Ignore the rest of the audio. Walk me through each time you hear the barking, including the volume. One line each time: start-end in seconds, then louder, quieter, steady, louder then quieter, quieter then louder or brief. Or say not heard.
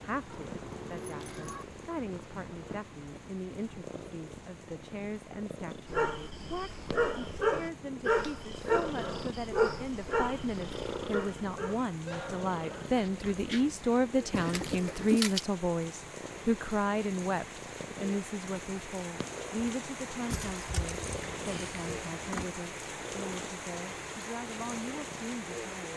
5.8-13.7 quieter.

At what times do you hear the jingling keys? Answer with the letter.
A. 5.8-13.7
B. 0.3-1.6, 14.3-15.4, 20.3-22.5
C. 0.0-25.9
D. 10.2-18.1
B.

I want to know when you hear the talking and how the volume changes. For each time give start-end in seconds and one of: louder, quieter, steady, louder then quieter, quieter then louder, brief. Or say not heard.
0.0-25.9 louder then quieter.